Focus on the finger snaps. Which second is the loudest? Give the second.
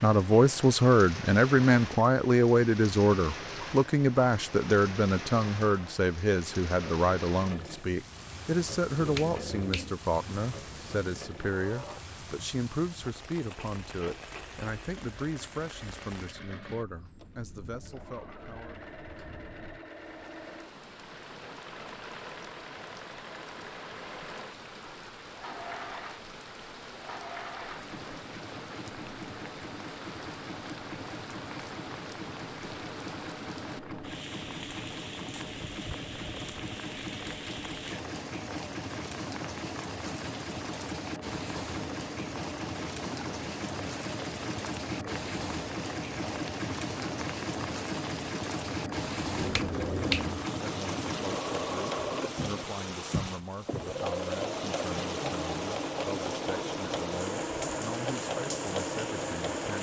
50 s.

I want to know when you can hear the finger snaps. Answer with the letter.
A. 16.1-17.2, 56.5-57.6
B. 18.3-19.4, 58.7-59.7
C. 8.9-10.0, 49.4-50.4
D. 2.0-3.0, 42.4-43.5
C.